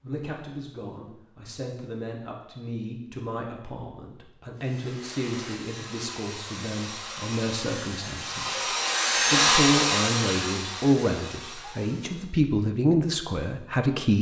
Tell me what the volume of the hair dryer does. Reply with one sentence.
The loudness of the hair dryer goes up, then down.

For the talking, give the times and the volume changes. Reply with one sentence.
The talking can be heard from 0.0 to 14.1 s, getting louder.